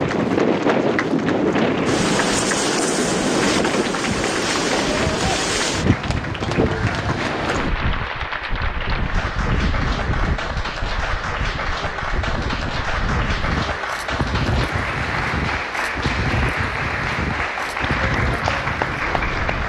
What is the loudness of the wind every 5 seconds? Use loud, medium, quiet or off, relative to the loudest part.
loud, medium, medium, medium.